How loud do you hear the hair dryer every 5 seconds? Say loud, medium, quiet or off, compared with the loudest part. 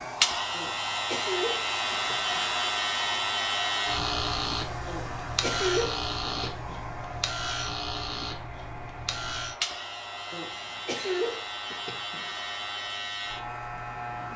loud, medium, medium.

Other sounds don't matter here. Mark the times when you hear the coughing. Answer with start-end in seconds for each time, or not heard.
0.5-2.5, 4.8-6.8, 10.3-12.3.